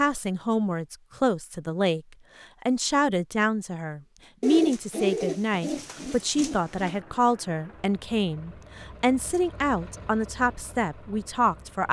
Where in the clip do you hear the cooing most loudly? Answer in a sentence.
The volume of the cooing peaks at 5 seconds.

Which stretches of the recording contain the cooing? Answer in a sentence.
The cooing can be heard from 4.4 to 7.0 s.